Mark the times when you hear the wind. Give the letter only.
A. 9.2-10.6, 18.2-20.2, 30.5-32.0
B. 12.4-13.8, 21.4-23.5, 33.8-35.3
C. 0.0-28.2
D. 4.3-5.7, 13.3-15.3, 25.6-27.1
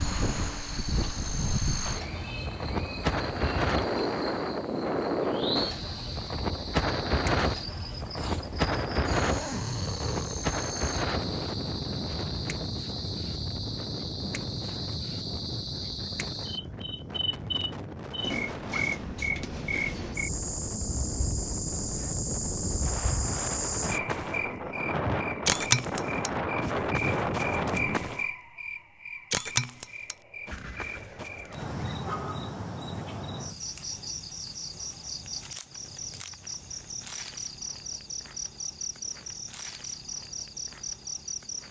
C.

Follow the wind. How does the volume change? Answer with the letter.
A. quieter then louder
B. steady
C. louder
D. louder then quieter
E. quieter
A.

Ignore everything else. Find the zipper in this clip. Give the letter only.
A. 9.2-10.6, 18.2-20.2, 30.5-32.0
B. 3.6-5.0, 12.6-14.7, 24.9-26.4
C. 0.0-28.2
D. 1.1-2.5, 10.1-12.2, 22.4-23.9
A.